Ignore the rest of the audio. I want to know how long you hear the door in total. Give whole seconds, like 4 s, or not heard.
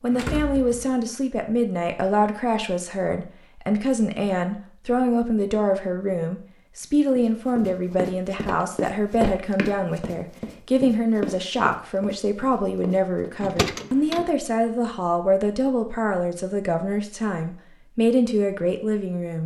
3 s.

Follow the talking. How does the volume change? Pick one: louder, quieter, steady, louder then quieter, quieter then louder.
steady.